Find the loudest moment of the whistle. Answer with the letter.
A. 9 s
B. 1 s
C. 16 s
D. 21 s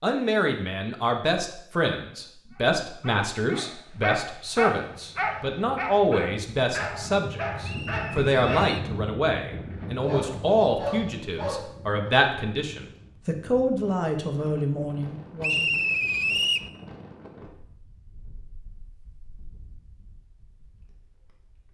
C.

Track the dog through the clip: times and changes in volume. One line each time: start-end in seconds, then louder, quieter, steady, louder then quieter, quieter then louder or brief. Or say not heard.
2.5-8.8 louder then quieter
9.6-12.2 brief.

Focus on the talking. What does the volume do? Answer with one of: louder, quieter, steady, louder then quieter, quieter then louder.
steady.